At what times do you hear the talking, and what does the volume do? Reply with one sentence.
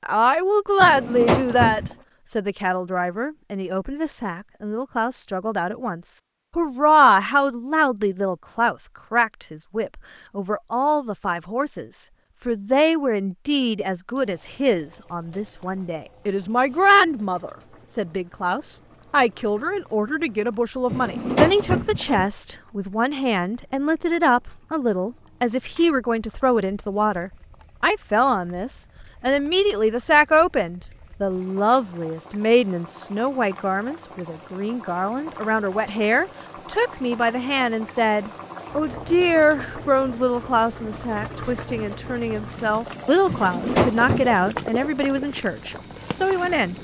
You can hear the talking from 0.0 to 46.7 s, at a steady volume.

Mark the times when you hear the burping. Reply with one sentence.
You can hear the burping from 0.8 to 1.9 s, from 20.9 to 22.2 s and from 43.2 to 44.4 s.